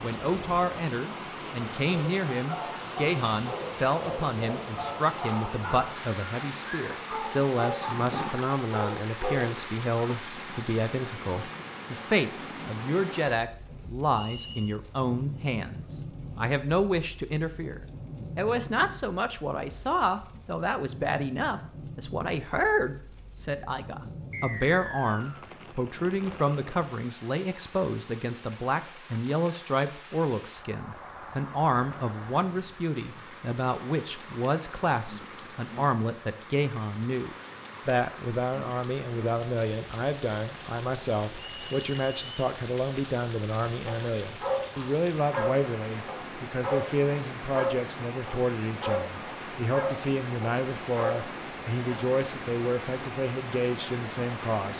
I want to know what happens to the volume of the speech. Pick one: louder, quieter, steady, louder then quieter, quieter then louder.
steady.